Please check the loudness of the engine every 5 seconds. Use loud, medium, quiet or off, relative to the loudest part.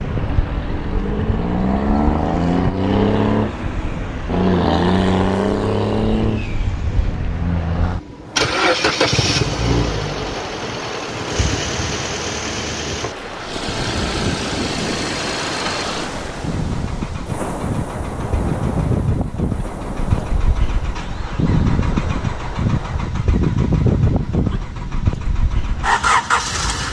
loud, loud, medium, medium, loud, loud.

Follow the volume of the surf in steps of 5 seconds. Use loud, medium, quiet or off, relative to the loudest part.
off, medium, loud, loud, medium, medium.